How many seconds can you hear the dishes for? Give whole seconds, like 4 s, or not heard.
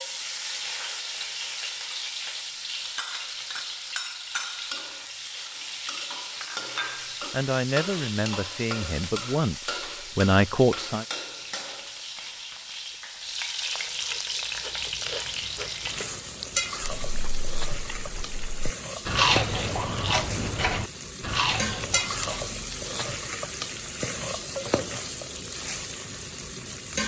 not heard.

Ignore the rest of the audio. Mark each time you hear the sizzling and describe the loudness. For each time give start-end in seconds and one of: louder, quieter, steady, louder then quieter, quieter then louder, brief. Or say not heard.
0.0-27.0 steady.